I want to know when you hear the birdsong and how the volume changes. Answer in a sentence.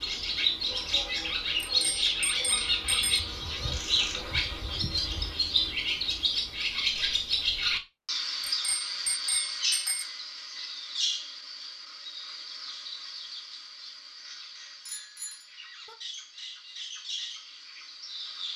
The birdsong can be heard from 0.0 to 18.5 s, getting quieter.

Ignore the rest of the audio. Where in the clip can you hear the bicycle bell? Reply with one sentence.
The bicycle bell can be heard from 1.6 to 3.2 s, from 8.4 to 10.1 s and from 14.8 to 15.9 s.